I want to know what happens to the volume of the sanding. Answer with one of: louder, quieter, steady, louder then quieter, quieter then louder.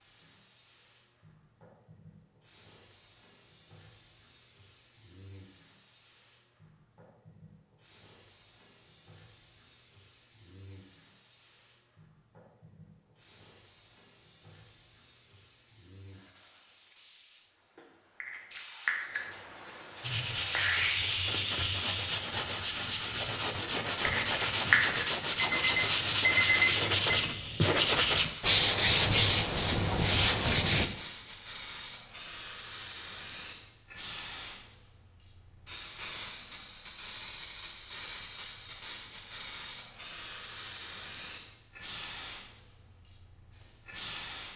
louder.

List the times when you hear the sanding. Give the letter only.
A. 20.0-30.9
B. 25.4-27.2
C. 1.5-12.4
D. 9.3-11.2
A.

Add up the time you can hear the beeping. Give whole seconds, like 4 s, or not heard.
2 s.